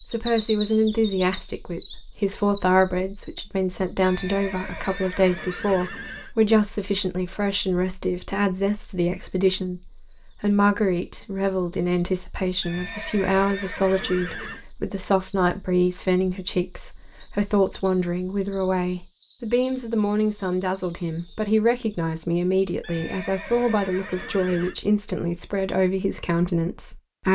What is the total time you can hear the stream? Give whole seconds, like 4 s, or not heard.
not heard.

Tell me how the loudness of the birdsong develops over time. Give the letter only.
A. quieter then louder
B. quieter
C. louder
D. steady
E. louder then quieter
A.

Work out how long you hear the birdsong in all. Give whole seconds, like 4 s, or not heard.
23 s.